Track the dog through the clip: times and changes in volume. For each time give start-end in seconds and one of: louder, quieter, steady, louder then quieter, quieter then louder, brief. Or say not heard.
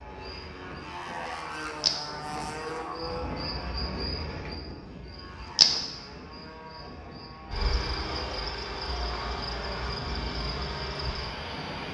not heard.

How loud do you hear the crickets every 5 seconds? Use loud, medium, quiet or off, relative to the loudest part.
medium, loud, medium.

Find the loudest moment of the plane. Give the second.
3 s.